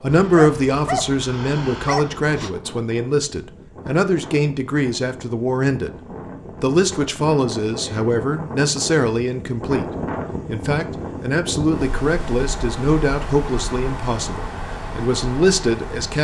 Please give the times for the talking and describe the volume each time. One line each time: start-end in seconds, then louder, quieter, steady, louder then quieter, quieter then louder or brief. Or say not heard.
0.0-16.1 steady.